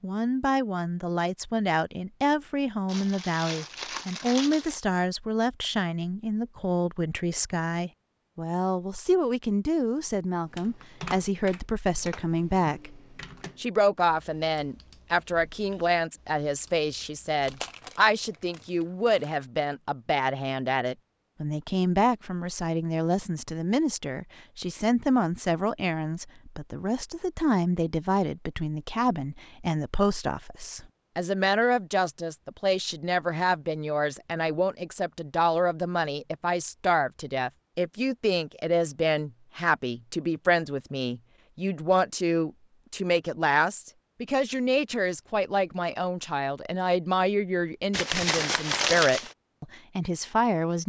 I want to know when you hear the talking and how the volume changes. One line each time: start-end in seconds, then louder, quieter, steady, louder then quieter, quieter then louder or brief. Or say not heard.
0.0-50.8 steady.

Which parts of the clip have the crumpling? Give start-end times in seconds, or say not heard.
2.9-4.8, 17.4-19.3, 47.9-49.4.